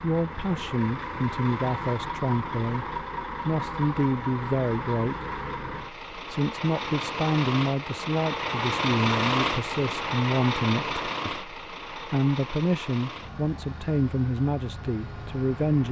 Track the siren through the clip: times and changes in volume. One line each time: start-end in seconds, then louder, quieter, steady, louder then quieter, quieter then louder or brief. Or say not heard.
not heard.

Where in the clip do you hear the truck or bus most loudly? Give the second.
9 s.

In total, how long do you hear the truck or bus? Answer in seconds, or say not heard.
16 s.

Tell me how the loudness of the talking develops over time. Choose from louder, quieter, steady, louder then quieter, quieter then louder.
steady.